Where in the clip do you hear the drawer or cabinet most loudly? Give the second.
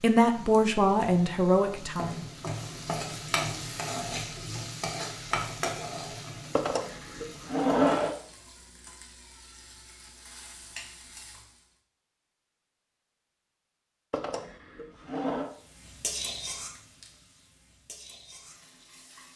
8 s.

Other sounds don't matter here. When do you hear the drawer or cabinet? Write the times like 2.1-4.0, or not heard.
6.5-8.2, 14.1-15.5.